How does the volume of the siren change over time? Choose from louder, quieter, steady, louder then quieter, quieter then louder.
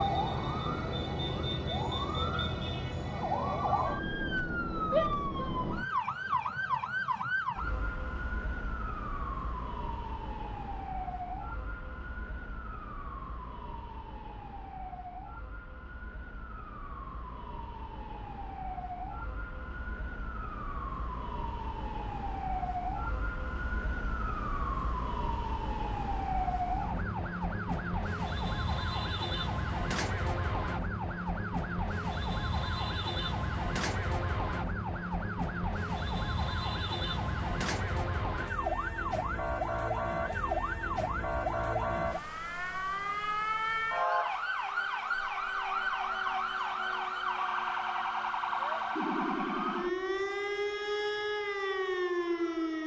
quieter then louder.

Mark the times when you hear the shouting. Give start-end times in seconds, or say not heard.
4.9-5.5.